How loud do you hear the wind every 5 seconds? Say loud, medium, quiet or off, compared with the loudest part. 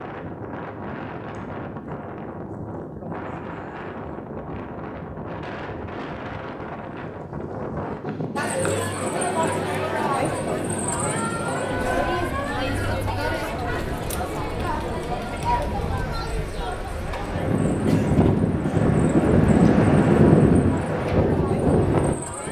quiet, quiet, quiet, loud, loud.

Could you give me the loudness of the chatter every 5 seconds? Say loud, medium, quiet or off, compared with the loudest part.
off, loud, loud, medium, medium.